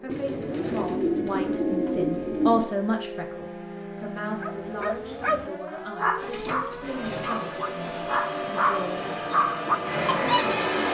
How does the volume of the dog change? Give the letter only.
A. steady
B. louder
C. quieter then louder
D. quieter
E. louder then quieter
C.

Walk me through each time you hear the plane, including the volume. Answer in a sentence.
The plane can be heard from 6.8 to 10.8 s, getting louder.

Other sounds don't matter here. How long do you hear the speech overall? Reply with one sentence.
You can hear the speech for 10 seconds altogether.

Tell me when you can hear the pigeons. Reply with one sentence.
You can hear the pigeons from 0.1 to 2.6 s and from 6.2 to 8.2 s.